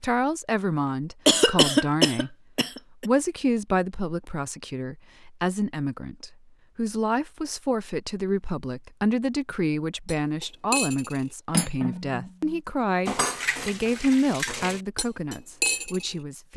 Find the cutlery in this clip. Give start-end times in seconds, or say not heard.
10.1-16.1.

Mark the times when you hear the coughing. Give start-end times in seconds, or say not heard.
1.2-3.0.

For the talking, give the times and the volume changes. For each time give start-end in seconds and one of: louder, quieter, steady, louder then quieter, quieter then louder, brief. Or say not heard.
0.0-2.4 brief
3.0-16.5 steady.